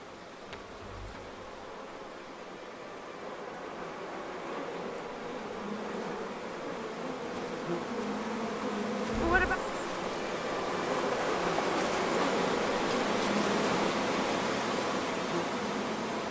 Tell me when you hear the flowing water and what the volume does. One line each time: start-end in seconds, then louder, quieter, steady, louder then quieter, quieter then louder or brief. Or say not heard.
0.0-16.2 louder.